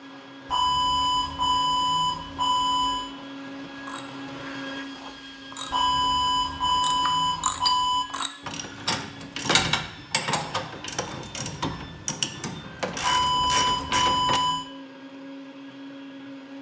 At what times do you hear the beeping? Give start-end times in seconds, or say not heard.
0.5-3.1, 5.7-8.1, 13.0-14.7.